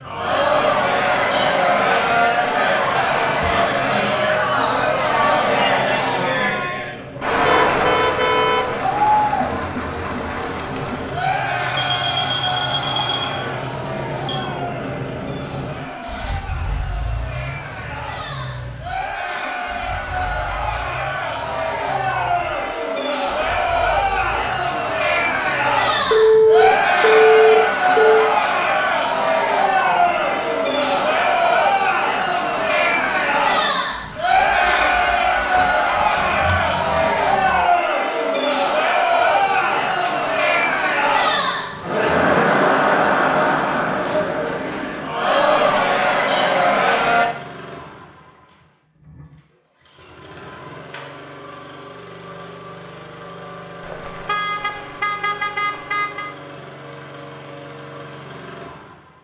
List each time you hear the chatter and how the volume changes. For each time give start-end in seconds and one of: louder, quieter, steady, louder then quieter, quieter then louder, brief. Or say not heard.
0.0-47.3 quieter then louder.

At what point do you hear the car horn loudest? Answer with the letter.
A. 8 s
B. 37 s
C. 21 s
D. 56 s
A.